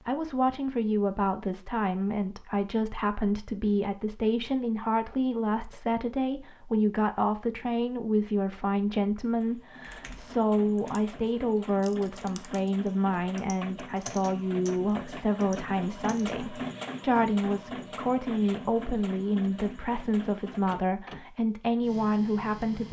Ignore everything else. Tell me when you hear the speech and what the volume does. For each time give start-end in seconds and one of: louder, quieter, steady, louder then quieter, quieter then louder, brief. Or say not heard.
0.0-22.8 steady.